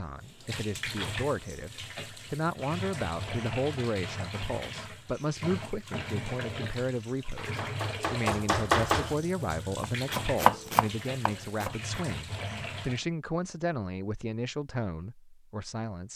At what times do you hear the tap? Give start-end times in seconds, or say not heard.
0.0-13.1.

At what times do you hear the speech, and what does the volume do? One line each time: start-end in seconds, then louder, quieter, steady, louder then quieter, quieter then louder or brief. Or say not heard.
0.0-16.1 steady.